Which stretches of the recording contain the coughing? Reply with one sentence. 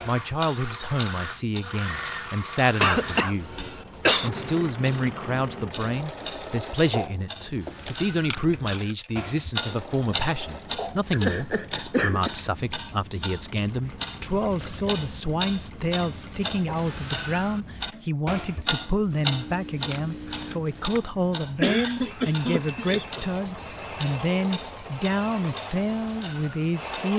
You can hear the coughing from 2.8 to 4.3 s, from 11.1 to 12.3 s and from 21.6 to 23.2 s.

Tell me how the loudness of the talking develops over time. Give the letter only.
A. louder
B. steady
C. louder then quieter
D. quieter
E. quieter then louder
B.